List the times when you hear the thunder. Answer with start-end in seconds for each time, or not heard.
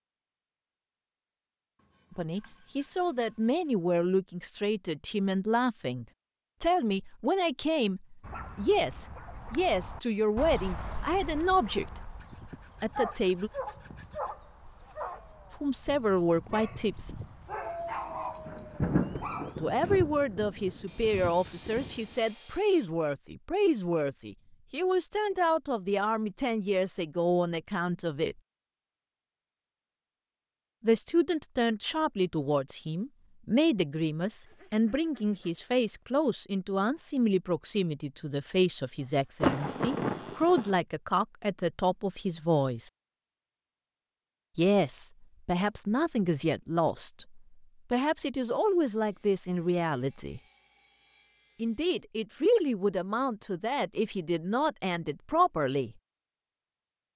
18.1-22.1, 39.4-40.8.